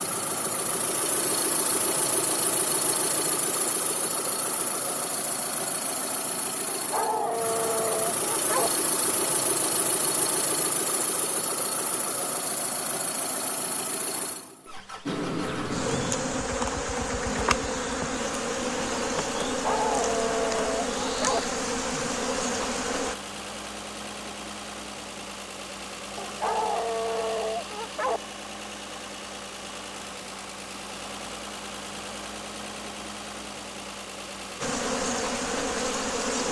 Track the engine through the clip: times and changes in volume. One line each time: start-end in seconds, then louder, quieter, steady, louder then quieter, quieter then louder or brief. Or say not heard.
0.0-36.4 quieter.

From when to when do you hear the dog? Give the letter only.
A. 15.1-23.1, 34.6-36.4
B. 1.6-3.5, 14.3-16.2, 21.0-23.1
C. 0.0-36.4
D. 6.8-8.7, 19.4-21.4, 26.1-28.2
D.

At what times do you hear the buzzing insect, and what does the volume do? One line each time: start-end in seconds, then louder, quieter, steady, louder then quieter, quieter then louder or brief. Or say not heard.
15.1-23.1 steady
34.6-36.4 brief.